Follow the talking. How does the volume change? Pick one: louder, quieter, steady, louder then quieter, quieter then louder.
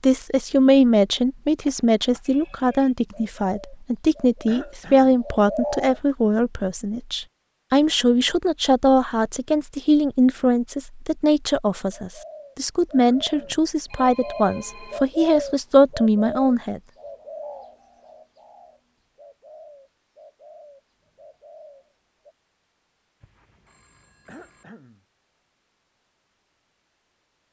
steady.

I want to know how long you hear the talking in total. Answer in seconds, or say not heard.
17 s.